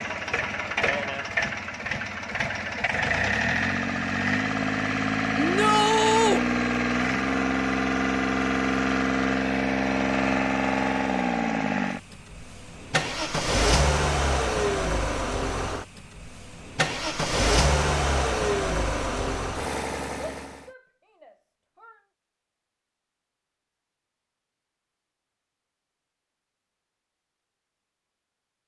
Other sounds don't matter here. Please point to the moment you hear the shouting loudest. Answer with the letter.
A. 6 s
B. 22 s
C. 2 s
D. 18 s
A.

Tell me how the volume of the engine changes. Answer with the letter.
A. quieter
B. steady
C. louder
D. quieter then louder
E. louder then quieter
B.